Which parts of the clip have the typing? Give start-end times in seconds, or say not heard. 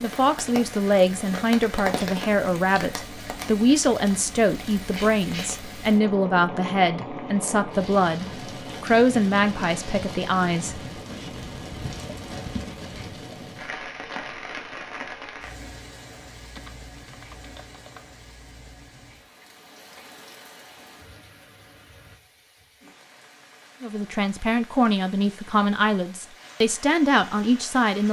16.6-18.1.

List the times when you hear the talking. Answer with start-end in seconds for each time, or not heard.
0.0-10.8, 23.8-28.0.